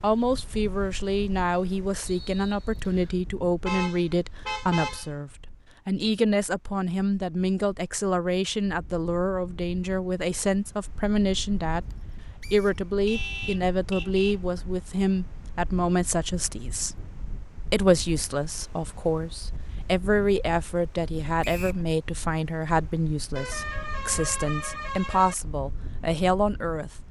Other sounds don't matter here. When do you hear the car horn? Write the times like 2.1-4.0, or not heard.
3.6-5.1, 13.1-14.4, 23.4-25.4.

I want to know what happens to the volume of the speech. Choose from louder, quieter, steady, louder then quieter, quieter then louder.
steady.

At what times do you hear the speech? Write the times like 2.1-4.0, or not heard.
0.0-16.9, 17.7-26.9.